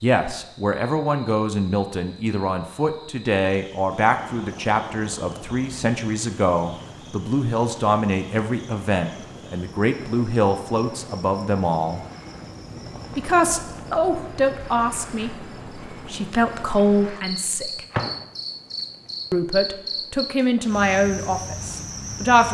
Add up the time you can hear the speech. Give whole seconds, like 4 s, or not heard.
20 s.